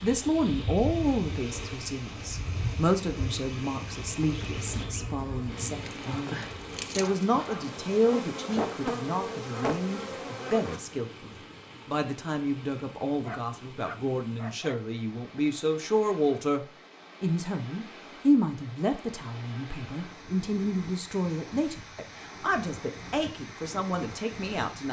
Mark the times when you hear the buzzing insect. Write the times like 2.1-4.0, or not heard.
0.0-10.8.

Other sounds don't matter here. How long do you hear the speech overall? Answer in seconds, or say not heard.
25 s.